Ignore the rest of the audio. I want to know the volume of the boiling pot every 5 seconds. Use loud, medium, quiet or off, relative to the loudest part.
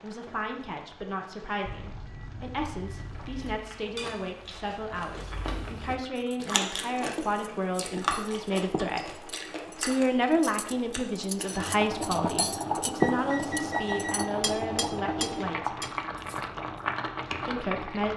quiet, quiet, loud, loud.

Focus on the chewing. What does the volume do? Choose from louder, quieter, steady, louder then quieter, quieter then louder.
louder then quieter.